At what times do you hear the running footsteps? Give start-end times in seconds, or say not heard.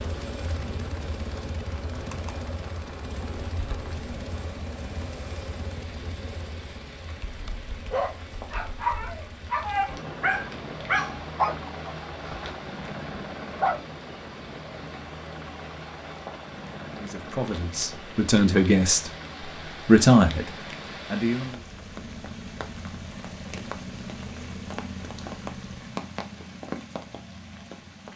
not heard.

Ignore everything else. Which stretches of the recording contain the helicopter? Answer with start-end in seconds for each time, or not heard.
0.0-26.0.